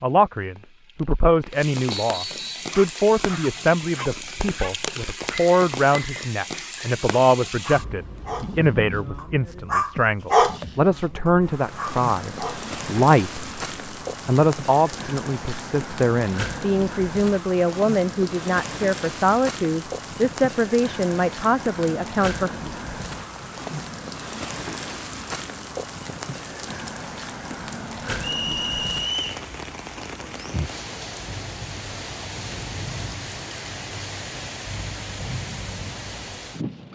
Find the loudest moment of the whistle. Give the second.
29 s.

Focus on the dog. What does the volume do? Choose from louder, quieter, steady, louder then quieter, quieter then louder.
louder then quieter.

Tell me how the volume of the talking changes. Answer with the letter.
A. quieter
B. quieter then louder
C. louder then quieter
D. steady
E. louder
D.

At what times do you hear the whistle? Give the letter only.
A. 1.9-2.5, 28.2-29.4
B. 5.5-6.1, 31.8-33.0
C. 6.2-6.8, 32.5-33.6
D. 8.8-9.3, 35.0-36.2
A.